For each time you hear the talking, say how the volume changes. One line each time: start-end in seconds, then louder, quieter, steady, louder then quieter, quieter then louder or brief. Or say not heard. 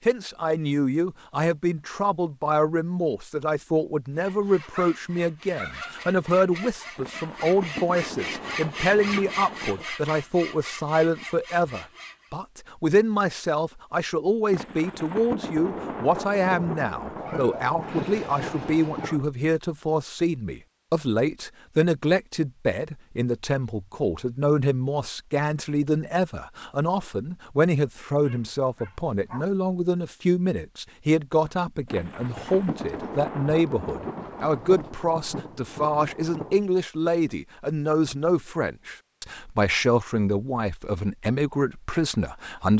0.1-42.7 steady.